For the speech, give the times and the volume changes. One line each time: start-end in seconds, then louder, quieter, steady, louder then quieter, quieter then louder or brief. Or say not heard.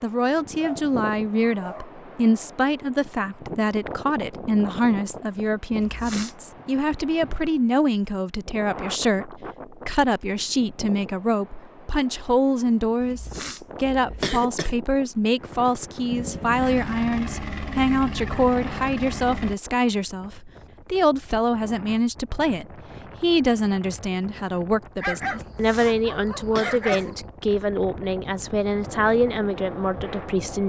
0.0-30.6 steady.